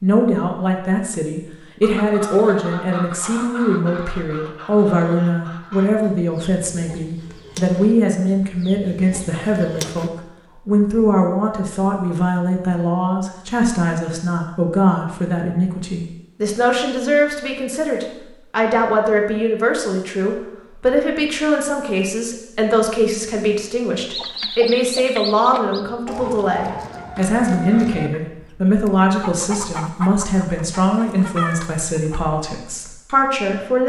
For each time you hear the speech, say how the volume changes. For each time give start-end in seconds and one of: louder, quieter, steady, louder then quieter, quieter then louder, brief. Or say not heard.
0.0-33.8 steady.